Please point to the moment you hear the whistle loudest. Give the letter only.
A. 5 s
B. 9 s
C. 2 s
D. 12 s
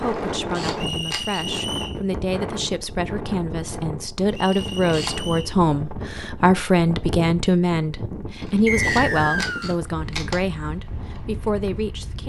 B.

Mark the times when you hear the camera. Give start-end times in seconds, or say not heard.
0.3-1.4, 4.5-5.2, 8.4-10.4.